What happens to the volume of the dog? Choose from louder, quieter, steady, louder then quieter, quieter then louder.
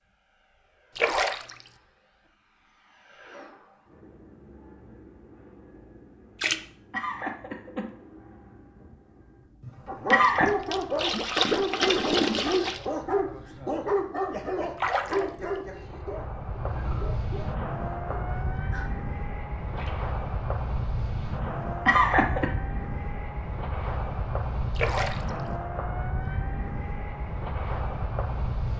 quieter.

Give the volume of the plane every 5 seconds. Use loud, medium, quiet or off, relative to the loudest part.
quiet, quiet, quiet, loud, loud, loud.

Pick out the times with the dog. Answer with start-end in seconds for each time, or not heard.
9.8-18.9.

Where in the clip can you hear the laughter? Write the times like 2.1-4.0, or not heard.
6.5-7.9, 9.7-10.5, 21.4-22.5.